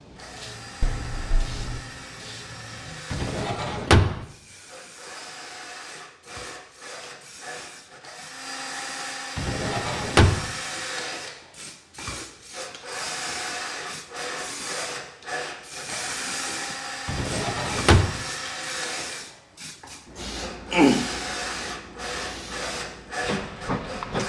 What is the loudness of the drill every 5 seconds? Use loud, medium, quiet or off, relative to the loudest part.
medium, loud, loud, loud, loud.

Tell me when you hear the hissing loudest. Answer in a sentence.
The loudest moment of the hissing is at 24 seconds.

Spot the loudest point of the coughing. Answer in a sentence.
The loudest moment of the coughing is at 21 seconds.